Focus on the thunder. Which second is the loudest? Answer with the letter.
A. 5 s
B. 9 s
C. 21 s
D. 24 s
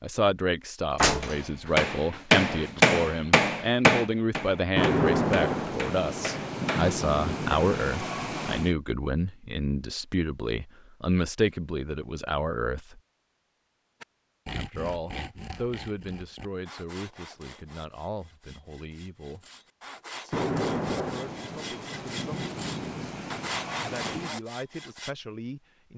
A.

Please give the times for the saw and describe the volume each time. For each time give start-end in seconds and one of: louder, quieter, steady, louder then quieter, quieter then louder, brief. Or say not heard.
14.0-25.1 quieter then louder.